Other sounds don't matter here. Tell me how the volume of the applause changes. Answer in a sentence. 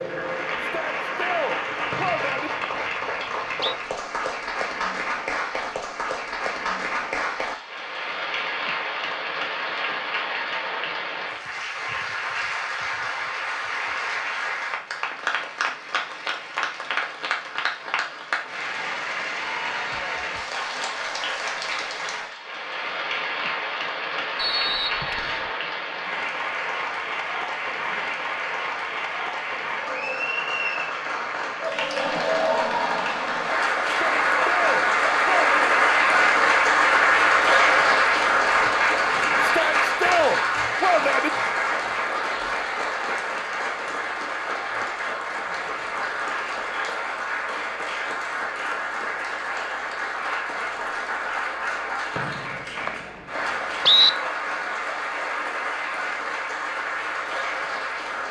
The loudness of the applause goes up, then down.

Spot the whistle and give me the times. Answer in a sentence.
You can hear the whistle from 1.9 to 3.8 s, from 24.4 to 25.5 s and from 52.1 to 54.1 s.